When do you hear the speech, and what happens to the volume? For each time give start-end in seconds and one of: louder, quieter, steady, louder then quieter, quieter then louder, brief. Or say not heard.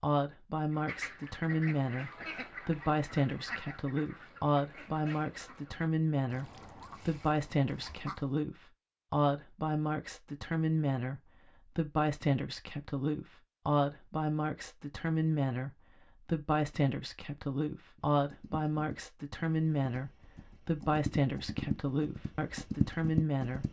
0.0-23.6 steady.